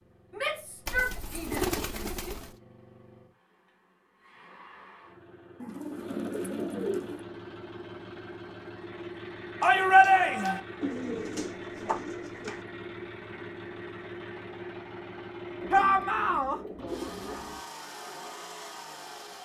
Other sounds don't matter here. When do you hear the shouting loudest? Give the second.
10 s.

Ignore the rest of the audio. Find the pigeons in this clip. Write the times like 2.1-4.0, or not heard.
0.8-2.5, 5.6-7.2, 10.8-12.7, 15.6-17.6.